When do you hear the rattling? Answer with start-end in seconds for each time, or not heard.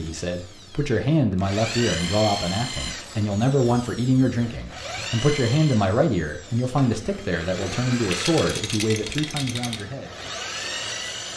8.1-9.8.